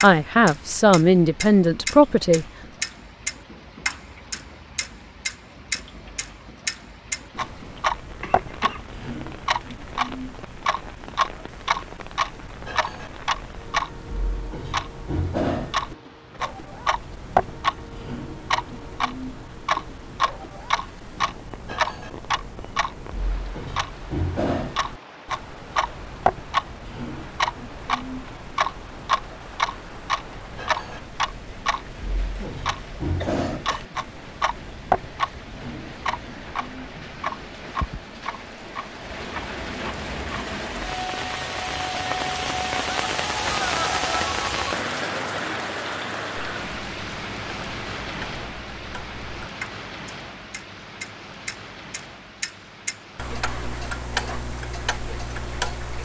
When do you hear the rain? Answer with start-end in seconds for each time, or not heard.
0.0-56.0.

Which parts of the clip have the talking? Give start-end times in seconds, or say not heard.
0.0-2.5.